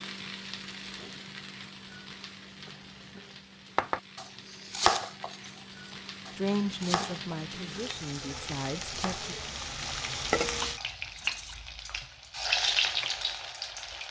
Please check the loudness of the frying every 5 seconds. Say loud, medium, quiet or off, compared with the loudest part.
quiet, medium, loud.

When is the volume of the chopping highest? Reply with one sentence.
The loudest moment of the chopping is at 5 seconds.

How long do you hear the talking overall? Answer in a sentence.
The talking can be heard for 3 seconds in total.